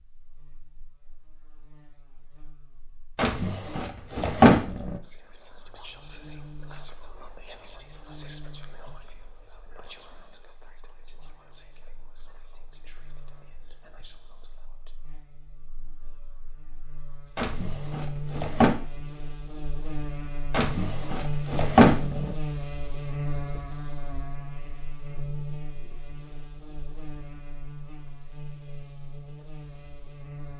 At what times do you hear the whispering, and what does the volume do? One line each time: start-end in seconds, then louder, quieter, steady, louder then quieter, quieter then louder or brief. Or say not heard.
5.0-14.9 quieter.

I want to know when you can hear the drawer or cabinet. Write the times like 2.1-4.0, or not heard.
3.1-5.0, 17.4-18.8, 20.5-22.4.